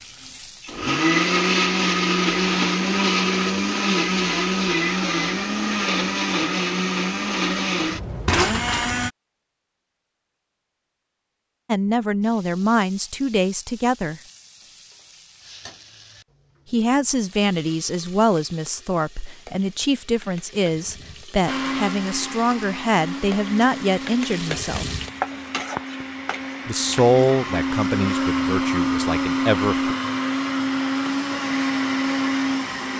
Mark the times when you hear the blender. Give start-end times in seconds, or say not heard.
0.0-9.1, 21.4-32.9.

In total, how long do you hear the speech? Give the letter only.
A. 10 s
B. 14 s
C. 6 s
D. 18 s
B.